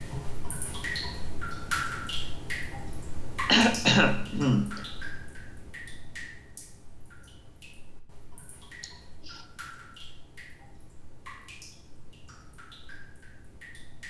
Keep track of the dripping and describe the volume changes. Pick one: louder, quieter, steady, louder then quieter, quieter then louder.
quieter.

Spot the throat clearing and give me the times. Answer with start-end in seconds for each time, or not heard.
3.5-4.8, 8.8-9.4.